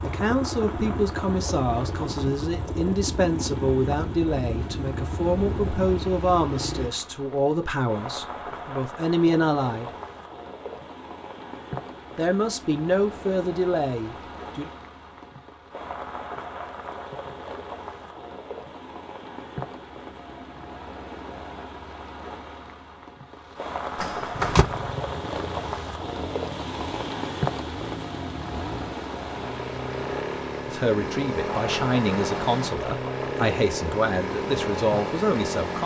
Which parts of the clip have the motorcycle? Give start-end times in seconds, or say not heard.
0.0-6.9, 24.3-35.8.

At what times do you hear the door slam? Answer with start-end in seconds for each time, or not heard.
24.0-24.6.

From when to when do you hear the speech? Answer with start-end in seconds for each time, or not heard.
0.0-9.9, 12.2-14.7, 30.6-35.8.